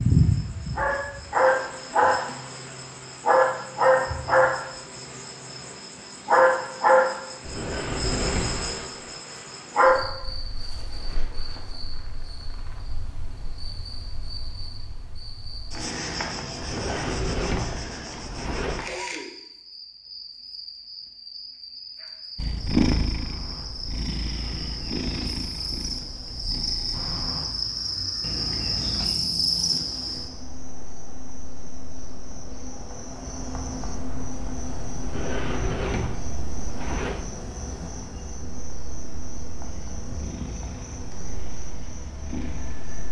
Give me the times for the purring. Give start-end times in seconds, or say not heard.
22.4-27.2, 39.6-42.9.